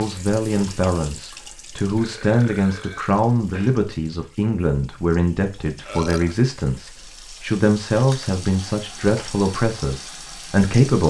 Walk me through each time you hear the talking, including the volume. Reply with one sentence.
The talking can be heard from 0.0 to 11.0 s, at a steady volume.